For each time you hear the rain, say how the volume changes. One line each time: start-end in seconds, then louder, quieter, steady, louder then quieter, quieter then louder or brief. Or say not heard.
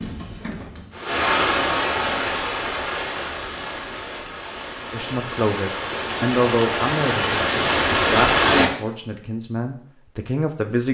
0.0-8.7 quieter then louder.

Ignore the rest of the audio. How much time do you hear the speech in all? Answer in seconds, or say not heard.
6 s.